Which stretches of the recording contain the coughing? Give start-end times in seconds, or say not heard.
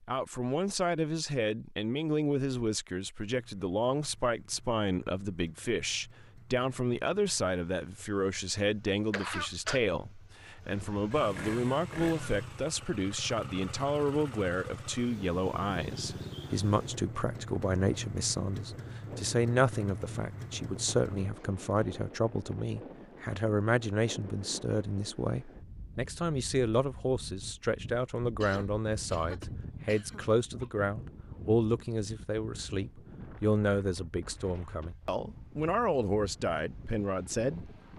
8.8-9.8, 28.4-30.9.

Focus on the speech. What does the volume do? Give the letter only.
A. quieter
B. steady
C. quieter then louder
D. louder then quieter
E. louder
B.